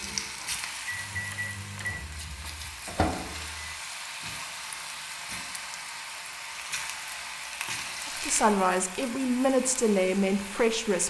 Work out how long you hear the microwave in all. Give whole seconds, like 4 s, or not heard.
4 s.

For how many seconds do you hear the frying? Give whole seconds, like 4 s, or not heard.
11 s.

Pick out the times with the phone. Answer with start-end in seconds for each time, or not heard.
not heard.